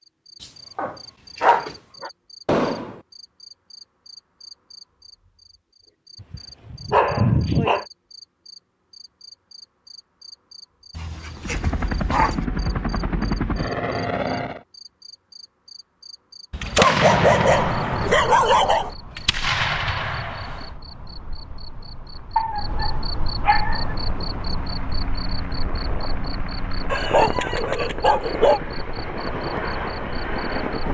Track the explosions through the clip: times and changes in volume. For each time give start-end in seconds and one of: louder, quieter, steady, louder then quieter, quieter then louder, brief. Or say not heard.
2.5-3.0 brief
16.6-20.7 quieter then louder.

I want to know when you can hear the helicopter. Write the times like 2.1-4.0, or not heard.
11.4-14.6, 23.6-30.9.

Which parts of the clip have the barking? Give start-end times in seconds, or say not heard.
0.4-2.1, 6.2-7.8, 10.9-12.4, 16.5-18.9, 22.4-23.9, 26.9-28.6.